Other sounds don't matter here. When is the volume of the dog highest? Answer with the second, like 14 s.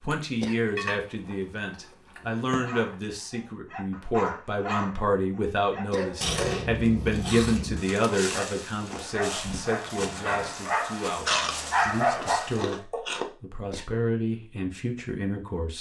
12 s.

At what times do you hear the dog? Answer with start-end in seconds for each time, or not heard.
2.6-12.8.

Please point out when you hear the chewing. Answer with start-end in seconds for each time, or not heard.
0.1-3.0, 6.2-7.8, 11.2-13.2.